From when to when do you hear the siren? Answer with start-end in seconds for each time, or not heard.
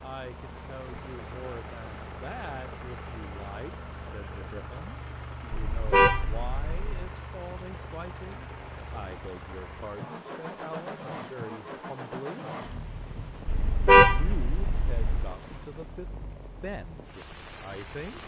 not heard.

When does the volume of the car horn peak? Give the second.
14 s.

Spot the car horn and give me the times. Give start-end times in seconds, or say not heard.
5.5-6.8, 13.4-15.3.